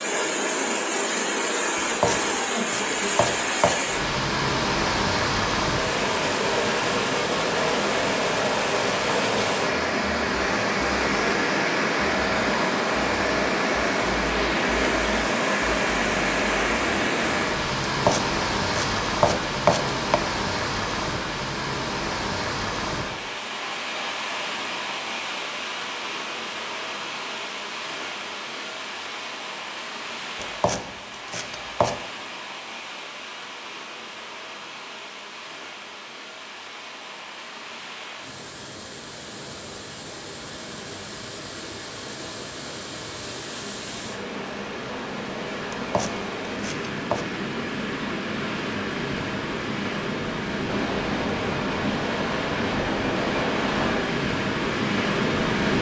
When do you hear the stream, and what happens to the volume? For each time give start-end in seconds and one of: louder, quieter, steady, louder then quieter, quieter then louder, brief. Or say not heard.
0.0-55.7 quieter then louder.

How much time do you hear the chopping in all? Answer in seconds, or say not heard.
8 s.